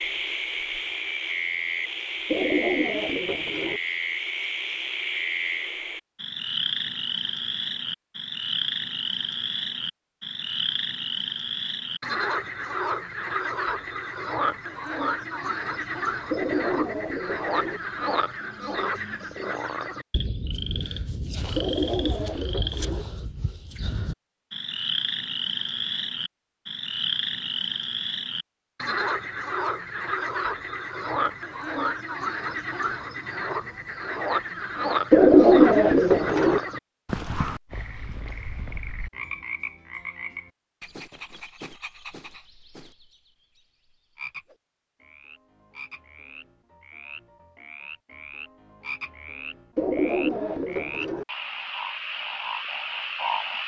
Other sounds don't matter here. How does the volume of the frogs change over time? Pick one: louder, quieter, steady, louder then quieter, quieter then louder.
quieter.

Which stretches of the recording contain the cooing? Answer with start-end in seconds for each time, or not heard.
2.2-3.8, 16.3-17.8, 21.6-23.1, 35.1-36.6, 49.8-51.2.